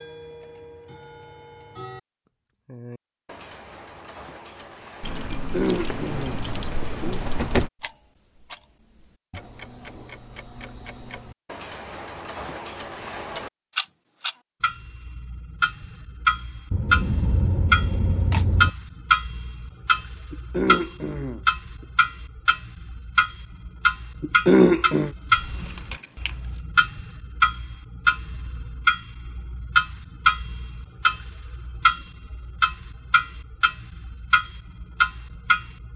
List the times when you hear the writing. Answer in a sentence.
You can't hear the writing here.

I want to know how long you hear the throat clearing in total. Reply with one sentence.
You can hear the throat clearing for 4 seconds altogether.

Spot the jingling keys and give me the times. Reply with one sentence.
The jingling keys can be heard from 5.0 to 7.7 s, from 16.7 to 18.7 s and from 25.6 to 26.6 s.